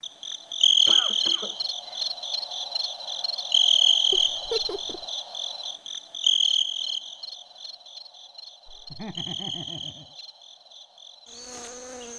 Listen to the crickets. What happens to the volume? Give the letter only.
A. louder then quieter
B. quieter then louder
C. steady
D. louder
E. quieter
E.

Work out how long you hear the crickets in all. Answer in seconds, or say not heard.
12 s.